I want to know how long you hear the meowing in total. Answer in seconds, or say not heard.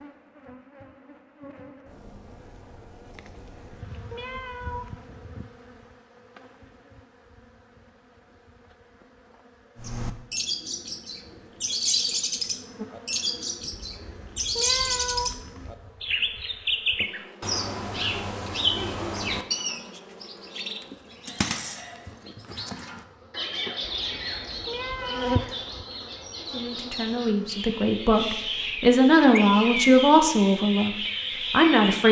6 s.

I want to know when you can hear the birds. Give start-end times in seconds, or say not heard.
9.8-32.0.